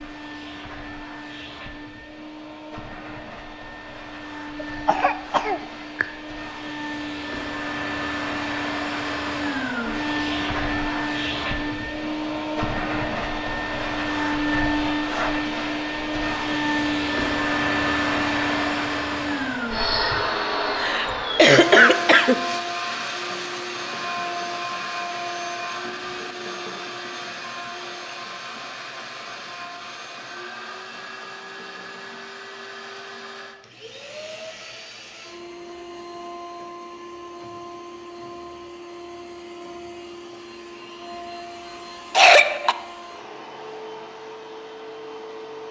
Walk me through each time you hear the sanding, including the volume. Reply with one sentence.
The sanding can't be heard in this clip.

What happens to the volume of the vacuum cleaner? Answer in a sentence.
The loudness of the vacuum cleaner goes up, then down.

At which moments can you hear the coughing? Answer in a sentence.
The coughing can be heard from 4.6 to 6.0 s, from 20.8 to 22.6 s and from 42.1 to 42.8 s.